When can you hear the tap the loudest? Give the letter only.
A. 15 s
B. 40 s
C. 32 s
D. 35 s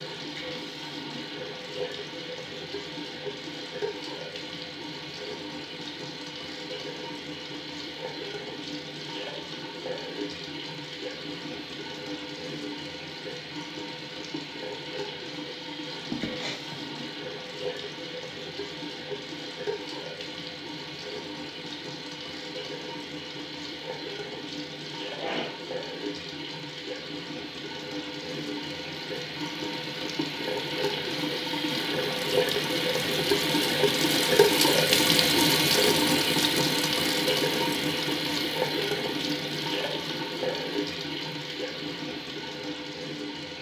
D.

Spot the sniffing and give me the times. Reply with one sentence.
You can hear the sniffing from 16.1 to 16.9 s and from 25.1 to 25.6 s.